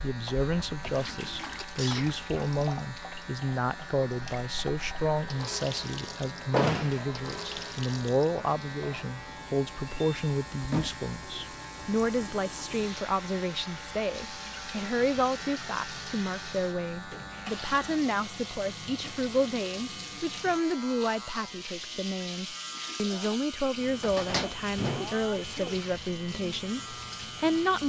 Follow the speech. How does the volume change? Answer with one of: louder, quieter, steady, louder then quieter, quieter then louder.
steady.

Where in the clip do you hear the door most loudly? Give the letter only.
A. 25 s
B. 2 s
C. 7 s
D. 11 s
C.